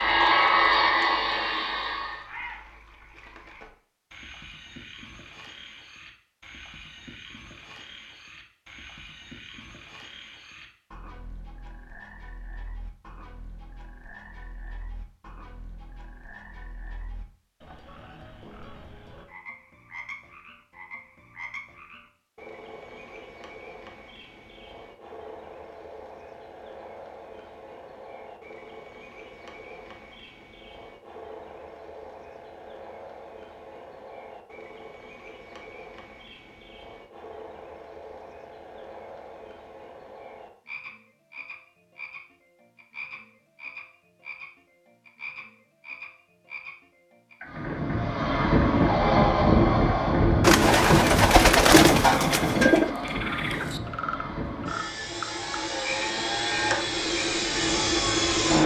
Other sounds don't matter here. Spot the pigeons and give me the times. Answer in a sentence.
The pigeons can be heard from 50.4 to 52.9 s.